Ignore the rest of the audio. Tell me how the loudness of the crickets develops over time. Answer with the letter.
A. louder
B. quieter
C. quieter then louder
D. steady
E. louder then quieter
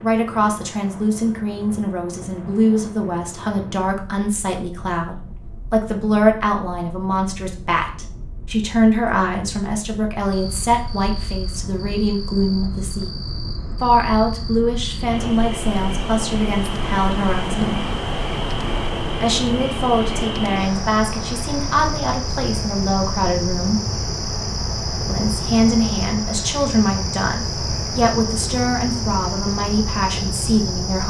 A.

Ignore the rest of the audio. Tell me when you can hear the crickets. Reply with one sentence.
The crickets can be heard from 10.3 to 31.0 s.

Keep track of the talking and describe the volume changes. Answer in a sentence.
The volume of the talking stays about the same.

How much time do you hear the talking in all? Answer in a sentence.
The talking can be heard for 28 seconds in total.